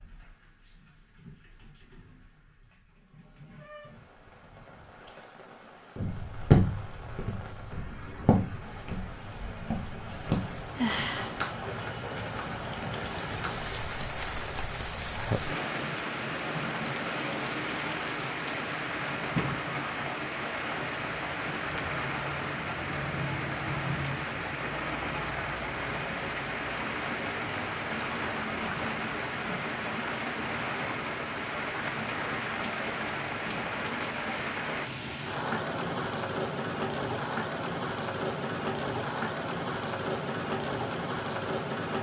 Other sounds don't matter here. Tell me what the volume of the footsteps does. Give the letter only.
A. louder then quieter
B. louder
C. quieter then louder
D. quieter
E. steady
D.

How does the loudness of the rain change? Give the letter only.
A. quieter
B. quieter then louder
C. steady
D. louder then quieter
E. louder
E.